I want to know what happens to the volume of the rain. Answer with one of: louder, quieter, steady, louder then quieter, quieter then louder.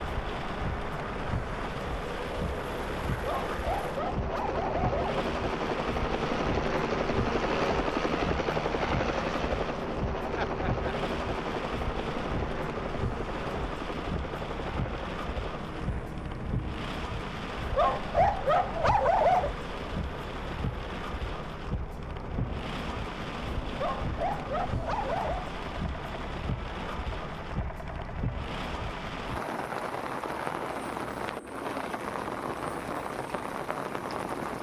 steady.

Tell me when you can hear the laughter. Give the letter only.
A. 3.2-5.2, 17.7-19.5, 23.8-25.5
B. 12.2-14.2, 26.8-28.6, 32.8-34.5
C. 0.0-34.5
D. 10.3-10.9
D.